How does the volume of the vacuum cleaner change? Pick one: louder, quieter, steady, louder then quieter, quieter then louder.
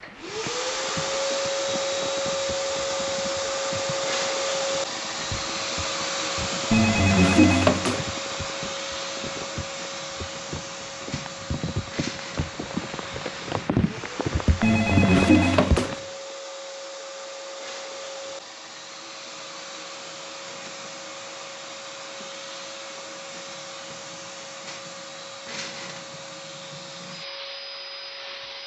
quieter.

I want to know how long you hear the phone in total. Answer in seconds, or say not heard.
3 s.